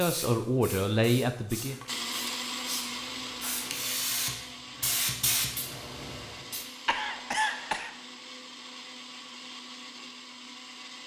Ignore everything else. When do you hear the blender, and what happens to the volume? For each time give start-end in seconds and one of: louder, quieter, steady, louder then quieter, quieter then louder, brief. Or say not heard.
1.9-11.0 quieter.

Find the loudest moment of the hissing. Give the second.
5 s.